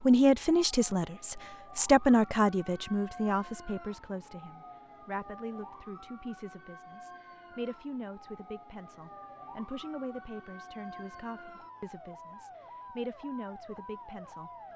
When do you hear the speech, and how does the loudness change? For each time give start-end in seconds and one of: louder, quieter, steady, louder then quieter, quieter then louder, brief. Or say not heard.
0.0-14.5 quieter.